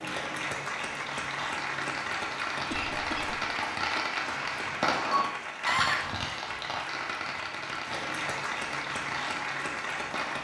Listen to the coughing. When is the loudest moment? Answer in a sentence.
The loudest moment of the coughing is at 6 seconds.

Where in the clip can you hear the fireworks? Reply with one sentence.
You can hear the fireworks from 0.9 to 10.3 s.